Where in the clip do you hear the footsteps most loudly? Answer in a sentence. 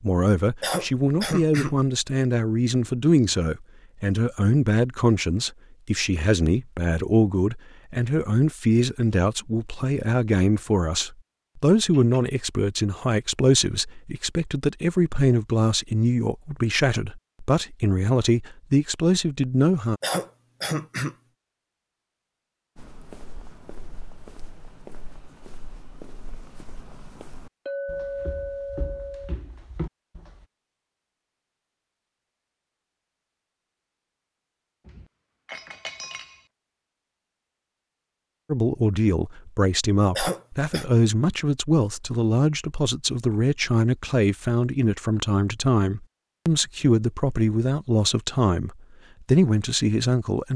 The volume of the footsteps peaks at 30 seconds.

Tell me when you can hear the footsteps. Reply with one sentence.
You can hear the footsteps from 22.8 to 30.4 s.